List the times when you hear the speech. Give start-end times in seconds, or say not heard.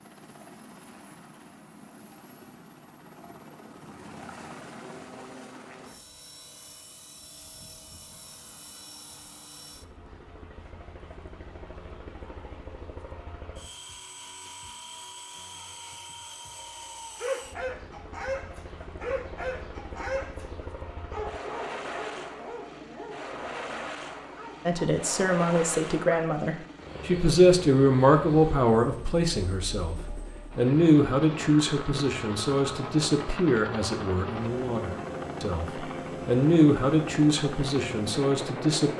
24.6-38.9.